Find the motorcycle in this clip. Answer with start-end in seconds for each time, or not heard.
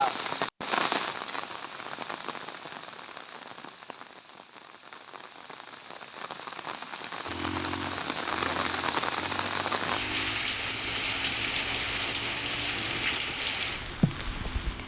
7.2-14.8.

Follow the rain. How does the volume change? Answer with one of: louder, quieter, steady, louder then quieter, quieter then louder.
quieter then louder.